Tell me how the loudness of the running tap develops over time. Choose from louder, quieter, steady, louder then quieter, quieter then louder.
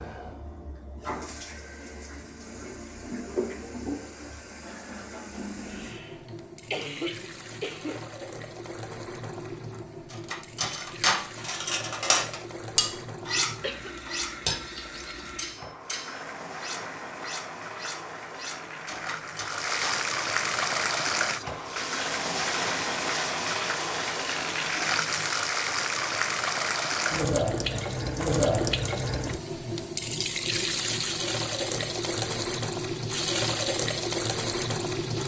louder.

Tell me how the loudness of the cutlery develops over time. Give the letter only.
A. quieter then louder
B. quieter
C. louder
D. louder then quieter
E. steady
B.